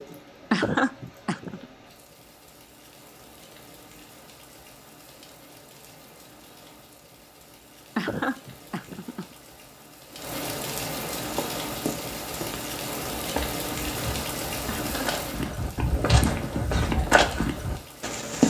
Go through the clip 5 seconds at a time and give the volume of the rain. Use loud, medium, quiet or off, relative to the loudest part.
quiet, quiet, loud, medium.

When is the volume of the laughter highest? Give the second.
1 s.